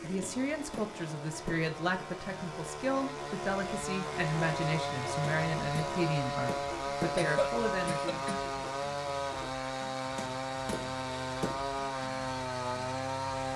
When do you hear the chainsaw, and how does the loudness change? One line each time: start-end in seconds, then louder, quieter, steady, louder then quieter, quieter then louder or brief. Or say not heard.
0.0-13.5 louder.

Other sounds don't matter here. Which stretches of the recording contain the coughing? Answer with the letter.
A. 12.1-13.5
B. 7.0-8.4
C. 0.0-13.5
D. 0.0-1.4
B.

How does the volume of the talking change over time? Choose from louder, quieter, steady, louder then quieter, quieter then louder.
steady.